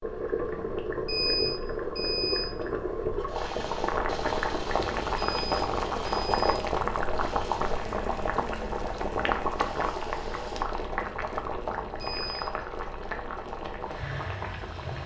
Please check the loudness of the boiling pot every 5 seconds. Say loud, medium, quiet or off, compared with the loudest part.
loud, loud, medium.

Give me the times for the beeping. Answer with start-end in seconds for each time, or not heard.
1.1-2.5, 5.2-6.5, 12.0-12.4.